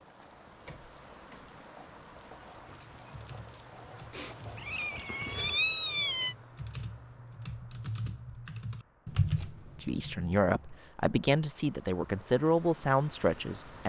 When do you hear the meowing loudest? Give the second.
6 s.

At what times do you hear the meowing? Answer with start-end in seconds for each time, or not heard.
4.1-6.3.